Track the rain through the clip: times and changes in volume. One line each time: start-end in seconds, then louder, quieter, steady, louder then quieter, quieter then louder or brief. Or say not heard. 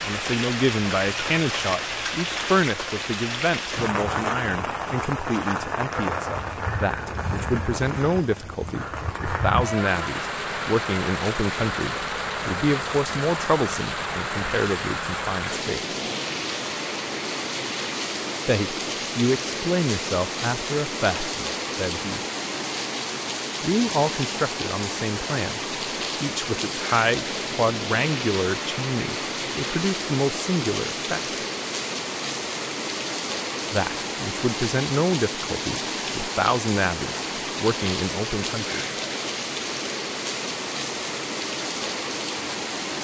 0.0-42.9 steady.